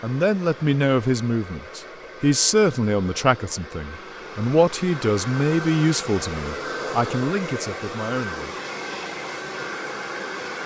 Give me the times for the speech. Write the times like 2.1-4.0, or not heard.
0.0-8.6.